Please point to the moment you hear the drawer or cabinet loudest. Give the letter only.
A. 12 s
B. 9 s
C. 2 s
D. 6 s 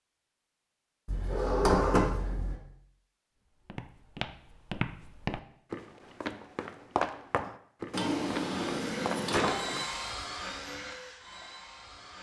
C.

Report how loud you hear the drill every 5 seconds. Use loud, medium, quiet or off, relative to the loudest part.
off, loud, loud.